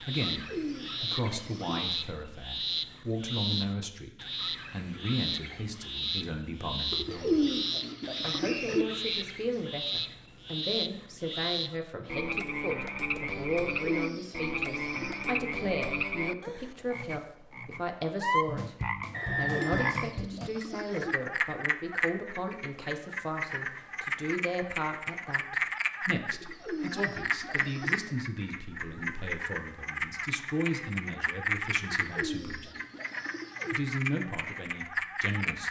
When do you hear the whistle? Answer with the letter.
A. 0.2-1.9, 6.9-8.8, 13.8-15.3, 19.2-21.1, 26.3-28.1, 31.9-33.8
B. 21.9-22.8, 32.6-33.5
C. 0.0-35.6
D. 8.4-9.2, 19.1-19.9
D.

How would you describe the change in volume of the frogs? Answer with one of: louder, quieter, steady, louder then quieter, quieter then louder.
steady.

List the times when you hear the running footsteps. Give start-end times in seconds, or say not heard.
not heard.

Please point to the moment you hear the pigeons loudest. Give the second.
7 s.